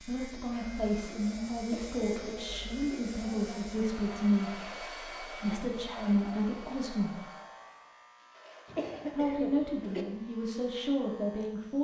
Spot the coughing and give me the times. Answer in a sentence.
You can hear the coughing from 1.6 to 3.0 s and from 8.7 to 10.1 s.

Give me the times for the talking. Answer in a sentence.
You can hear the talking from 0.0 to 7.2 s and from 9.1 to 11.7 s.